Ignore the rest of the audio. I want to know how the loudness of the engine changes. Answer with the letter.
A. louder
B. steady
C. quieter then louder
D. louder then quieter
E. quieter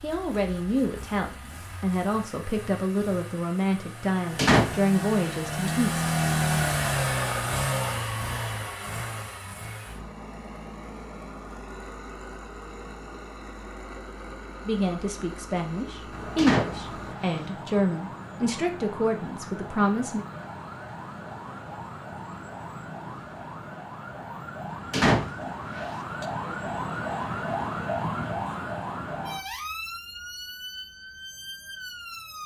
D.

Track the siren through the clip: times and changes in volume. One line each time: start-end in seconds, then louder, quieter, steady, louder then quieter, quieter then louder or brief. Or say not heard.
16.1-32.4 louder then quieter.